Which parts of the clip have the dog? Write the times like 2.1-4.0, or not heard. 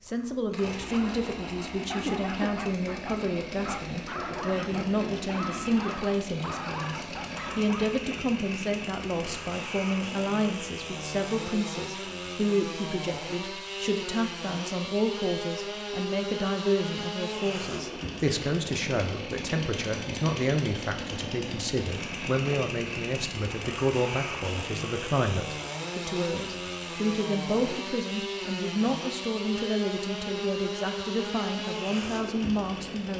0.8-8.0.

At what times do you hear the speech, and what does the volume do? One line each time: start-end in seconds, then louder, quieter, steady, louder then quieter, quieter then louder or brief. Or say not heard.
0.1-33.1 steady.